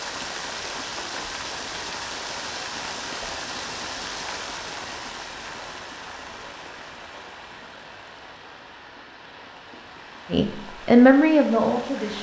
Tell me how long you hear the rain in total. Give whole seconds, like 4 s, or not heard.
12 s.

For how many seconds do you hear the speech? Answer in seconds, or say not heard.
2 s.